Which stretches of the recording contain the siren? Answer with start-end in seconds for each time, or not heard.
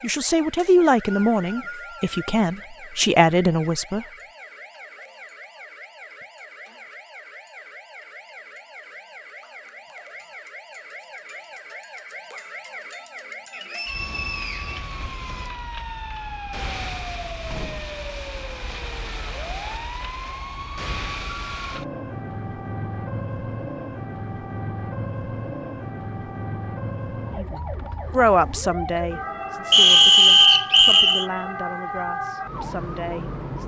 0.0-33.6.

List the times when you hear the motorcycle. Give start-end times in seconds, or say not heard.
not heard.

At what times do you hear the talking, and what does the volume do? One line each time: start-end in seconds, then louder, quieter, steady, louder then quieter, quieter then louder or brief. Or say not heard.
0.0-4.0 quieter then louder
27.3-33.6 quieter.